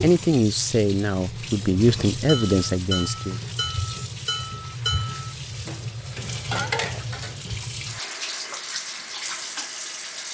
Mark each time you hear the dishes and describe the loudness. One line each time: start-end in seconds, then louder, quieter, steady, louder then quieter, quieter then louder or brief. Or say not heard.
1.9-7.8 quieter then louder.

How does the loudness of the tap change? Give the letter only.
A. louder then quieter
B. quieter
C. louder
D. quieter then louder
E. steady
E.